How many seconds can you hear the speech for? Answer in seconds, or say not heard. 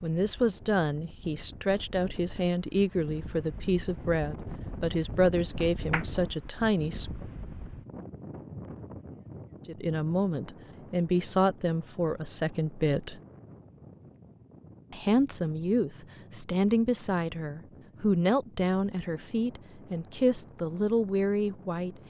18 s.